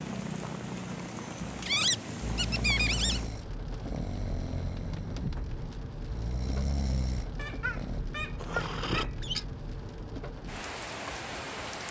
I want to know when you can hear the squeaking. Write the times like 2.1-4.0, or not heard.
1.6-3.2, 7.3-9.4.